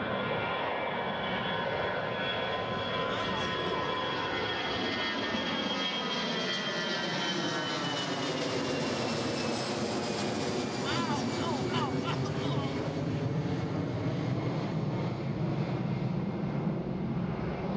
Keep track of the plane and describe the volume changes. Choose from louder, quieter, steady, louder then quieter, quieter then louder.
steady.